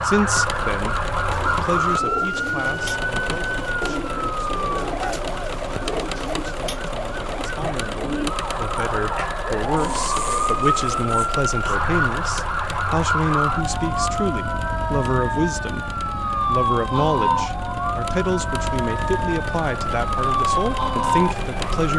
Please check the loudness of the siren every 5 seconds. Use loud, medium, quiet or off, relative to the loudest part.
loud, medium, loud, loud, loud.